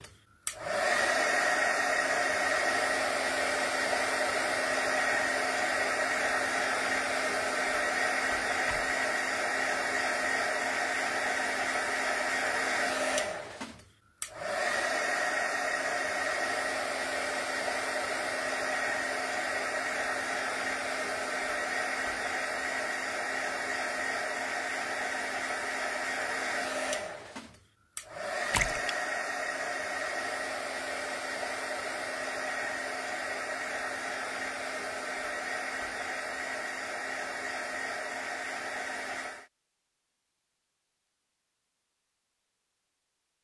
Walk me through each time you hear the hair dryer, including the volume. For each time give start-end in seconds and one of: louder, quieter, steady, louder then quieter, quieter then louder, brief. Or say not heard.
0.0-39.5 quieter.